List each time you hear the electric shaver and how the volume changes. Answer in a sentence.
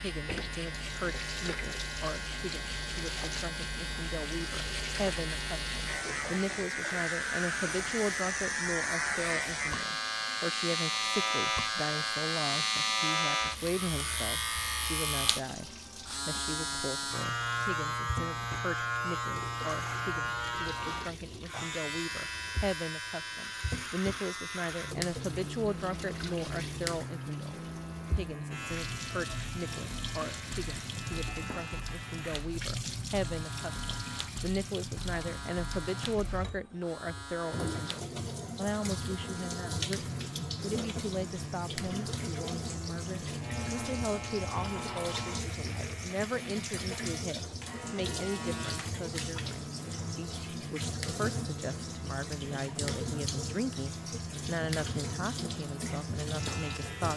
You can hear the electric shaver from 0.0 to 57.1 s, getting quieter.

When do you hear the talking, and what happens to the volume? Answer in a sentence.
You can hear the talking from 0.0 to 57.1 s, at a steady volume.